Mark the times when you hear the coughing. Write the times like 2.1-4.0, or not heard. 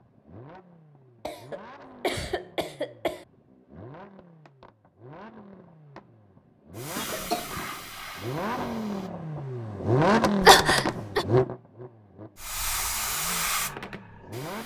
1.2-3.2, 7.0-7.7, 10.4-11.2.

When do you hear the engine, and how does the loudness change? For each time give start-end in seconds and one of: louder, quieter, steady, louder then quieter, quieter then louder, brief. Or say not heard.
0.0-14.6 louder then quieter.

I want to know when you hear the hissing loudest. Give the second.
13 s.